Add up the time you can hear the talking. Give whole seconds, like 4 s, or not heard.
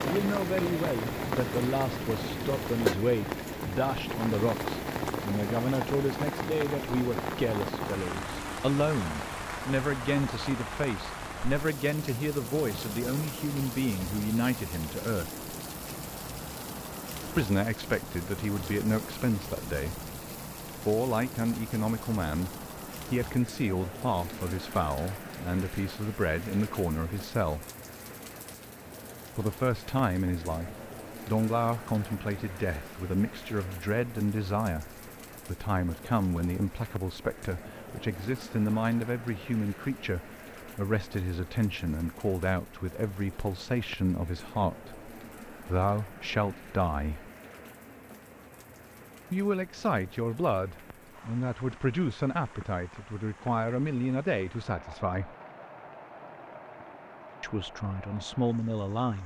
51 s.